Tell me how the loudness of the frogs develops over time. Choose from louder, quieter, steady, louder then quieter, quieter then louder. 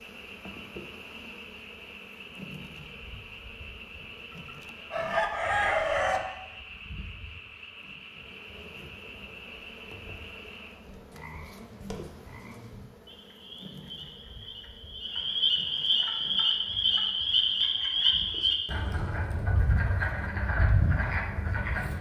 louder.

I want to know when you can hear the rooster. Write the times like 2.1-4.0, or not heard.
4.5-6.2.